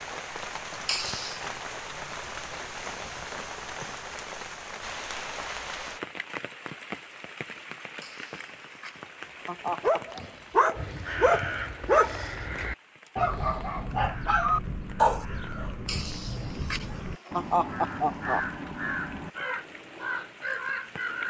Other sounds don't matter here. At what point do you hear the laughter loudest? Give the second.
18 s.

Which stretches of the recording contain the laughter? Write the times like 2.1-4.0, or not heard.
0.8-1.4, 8.0-10.2, 15.8-18.4.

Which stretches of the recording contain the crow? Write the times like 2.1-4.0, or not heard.
10.8-21.2.